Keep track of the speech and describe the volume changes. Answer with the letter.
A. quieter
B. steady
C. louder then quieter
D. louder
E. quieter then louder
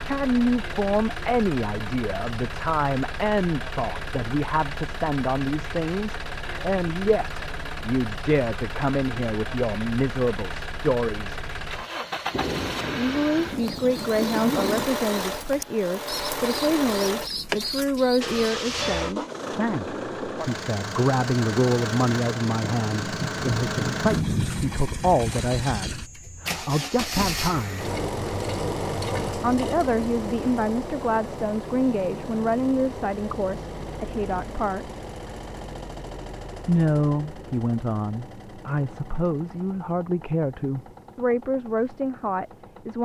B.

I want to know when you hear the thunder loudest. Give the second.
24 s.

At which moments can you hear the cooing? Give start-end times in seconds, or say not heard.
13.4-18.6.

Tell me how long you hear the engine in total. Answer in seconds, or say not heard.
43 s.